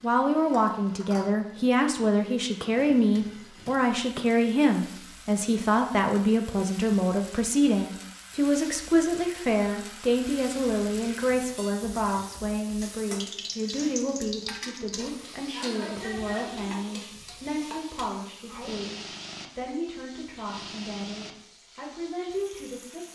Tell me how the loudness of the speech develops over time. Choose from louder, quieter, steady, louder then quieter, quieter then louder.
quieter.